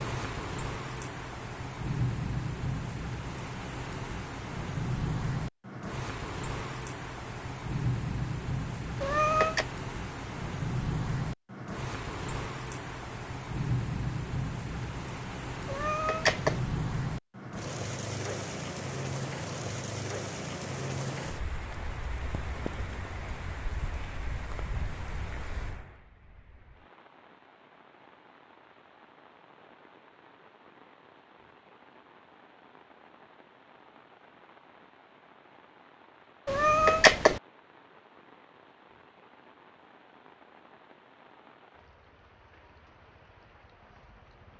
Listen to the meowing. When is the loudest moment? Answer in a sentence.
The loudest moment of the meowing is at 37 seconds.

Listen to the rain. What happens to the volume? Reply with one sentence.
The loudness of the rain goes down.